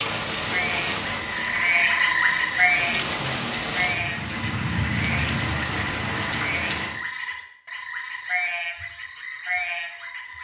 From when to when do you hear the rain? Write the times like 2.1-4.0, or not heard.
0.0-7.0.